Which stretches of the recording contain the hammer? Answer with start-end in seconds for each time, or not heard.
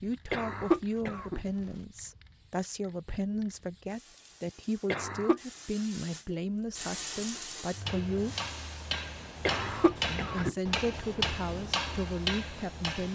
7.8-13.0.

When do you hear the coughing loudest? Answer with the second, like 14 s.
1 s.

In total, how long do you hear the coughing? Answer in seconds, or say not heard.
3 s.